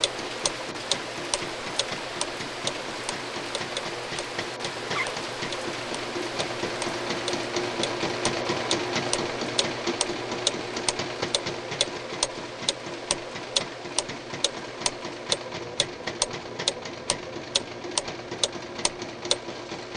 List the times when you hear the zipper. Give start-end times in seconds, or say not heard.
4.8-5.2.